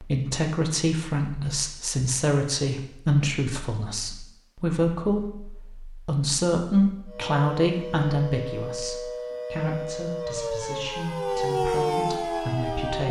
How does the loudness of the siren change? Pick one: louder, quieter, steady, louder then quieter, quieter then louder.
louder.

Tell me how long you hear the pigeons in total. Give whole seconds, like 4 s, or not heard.
not heard.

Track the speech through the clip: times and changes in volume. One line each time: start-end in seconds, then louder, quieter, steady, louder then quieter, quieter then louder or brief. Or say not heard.
0.0-13.0 quieter.